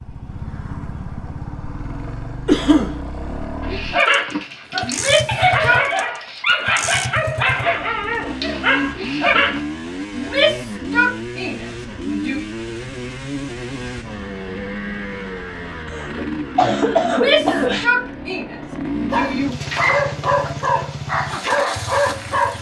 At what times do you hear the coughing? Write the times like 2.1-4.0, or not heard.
2.5-3.0, 15.9-17.9.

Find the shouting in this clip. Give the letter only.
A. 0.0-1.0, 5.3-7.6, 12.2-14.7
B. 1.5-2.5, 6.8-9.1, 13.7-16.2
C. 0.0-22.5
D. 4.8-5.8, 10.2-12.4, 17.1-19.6
D.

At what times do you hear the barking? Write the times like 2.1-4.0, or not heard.
3.6-9.6, 19.1-22.5.